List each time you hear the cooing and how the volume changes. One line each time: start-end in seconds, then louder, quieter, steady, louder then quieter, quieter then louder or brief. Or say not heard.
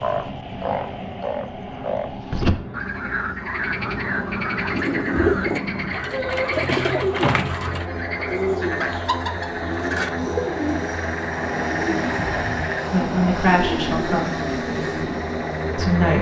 4.7-15.2 quieter.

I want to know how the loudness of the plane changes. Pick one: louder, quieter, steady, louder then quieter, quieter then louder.
louder.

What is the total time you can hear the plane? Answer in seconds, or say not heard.
16 s.